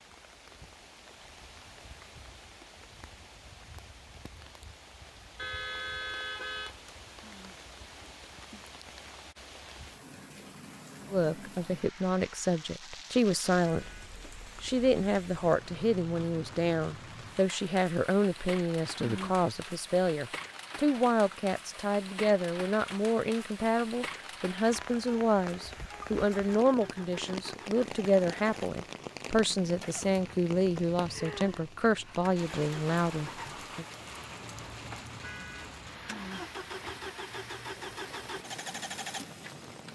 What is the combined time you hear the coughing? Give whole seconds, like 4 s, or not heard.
3 s.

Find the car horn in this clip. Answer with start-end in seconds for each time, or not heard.
5.3-6.8, 13.6-14.2, 35.2-35.8.